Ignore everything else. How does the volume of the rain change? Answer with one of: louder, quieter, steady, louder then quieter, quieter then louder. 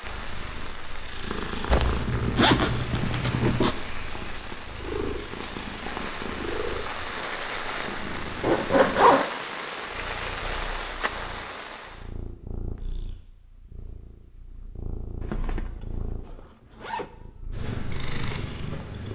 louder.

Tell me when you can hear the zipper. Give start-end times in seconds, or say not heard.
1.7-3.8, 8.4-9.3, 15.2-17.1.